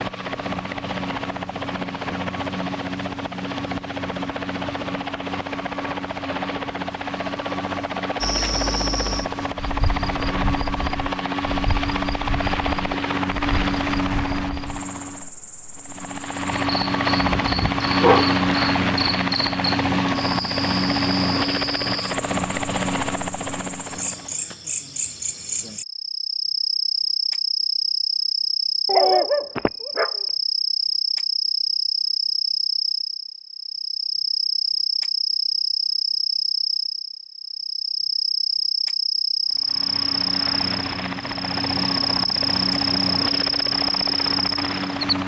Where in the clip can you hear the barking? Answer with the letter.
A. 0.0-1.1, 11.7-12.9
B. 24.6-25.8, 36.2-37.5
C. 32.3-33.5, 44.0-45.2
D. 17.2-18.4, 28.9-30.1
D.